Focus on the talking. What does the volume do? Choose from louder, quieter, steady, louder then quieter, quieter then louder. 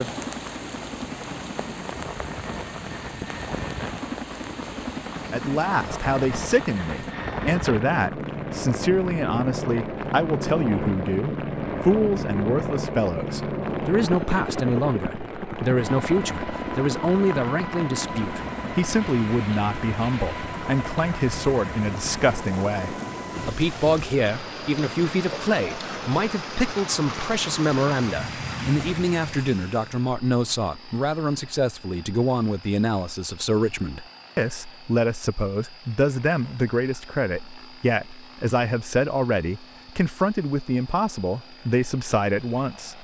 steady.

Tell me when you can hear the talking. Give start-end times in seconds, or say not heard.
5.3-42.9.